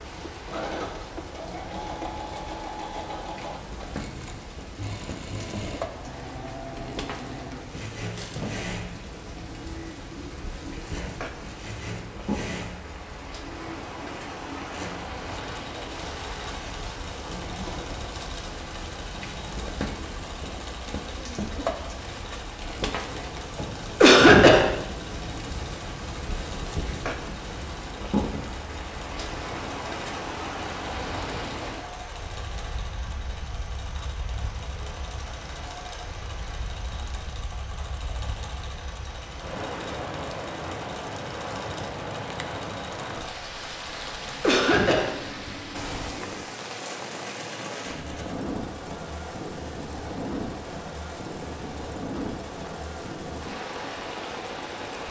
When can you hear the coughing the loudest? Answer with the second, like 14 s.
24 s.